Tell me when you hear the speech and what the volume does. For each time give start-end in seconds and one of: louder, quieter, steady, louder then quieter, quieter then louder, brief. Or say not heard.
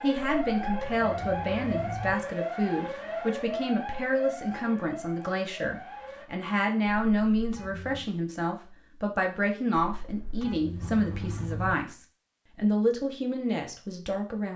0.0-14.5 steady.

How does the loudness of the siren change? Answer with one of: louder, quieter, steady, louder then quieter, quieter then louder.
quieter.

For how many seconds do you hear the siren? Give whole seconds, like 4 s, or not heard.
6 s.